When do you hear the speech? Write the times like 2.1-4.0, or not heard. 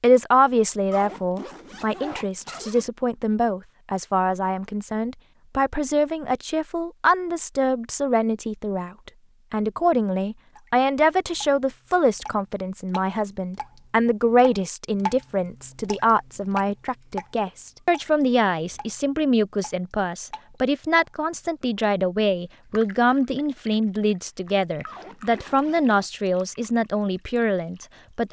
0.0-28.2.